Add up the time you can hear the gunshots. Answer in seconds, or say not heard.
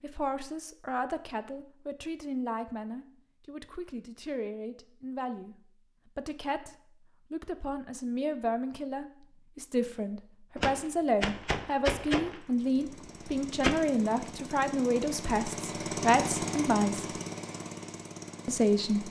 3 s.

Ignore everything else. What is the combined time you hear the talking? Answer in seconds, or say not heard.
18 s.